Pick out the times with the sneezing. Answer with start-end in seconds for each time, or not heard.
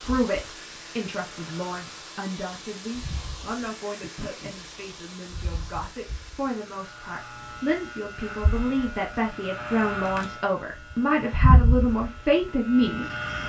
4.0-4.5.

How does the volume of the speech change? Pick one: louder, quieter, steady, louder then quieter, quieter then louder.
louder.